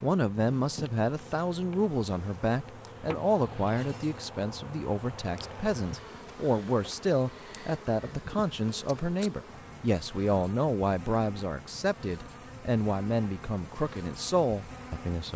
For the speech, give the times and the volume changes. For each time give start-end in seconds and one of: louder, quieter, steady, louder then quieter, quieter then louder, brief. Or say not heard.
0.0-15.3 steady.